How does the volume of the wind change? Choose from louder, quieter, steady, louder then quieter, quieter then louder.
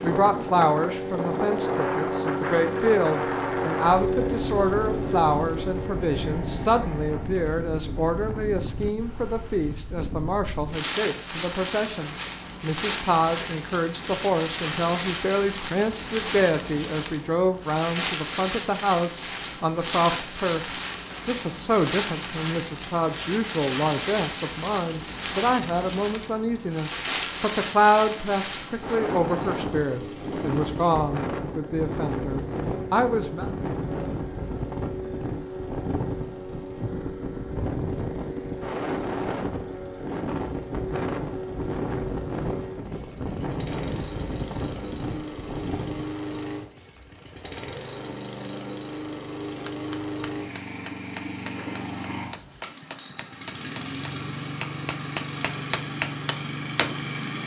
steady.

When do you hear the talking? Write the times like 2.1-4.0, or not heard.
0.0-33.5.